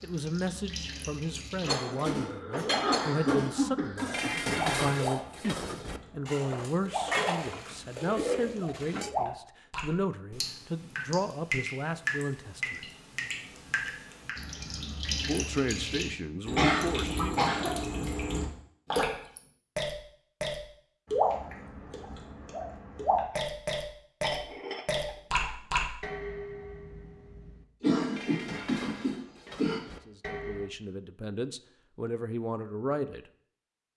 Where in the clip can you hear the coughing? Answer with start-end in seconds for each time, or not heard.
2.0-4.5, 16.6-17.8, 27.8-29.8.